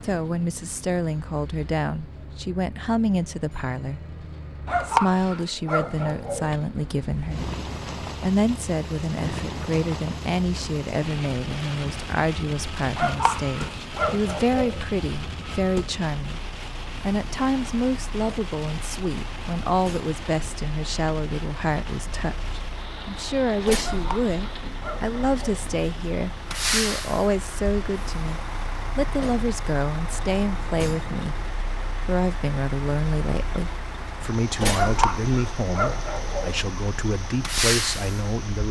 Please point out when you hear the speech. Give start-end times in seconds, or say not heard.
0.0-4.0, 4.8-7.5, 8.2-38.6.